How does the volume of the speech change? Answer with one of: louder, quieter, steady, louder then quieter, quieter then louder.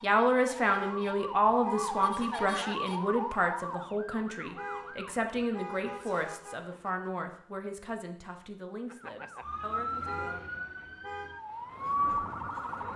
quieter.